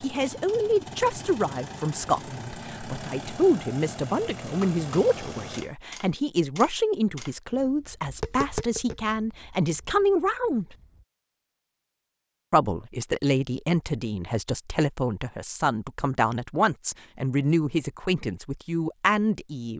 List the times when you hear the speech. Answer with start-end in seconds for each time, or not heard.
0.0-10.8, 12.5-19.7.